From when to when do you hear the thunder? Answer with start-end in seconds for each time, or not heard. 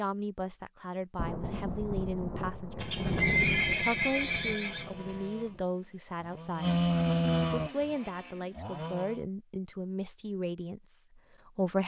1.1-5.6.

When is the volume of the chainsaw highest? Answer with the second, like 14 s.
7 s.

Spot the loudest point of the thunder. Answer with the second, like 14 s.
3 s.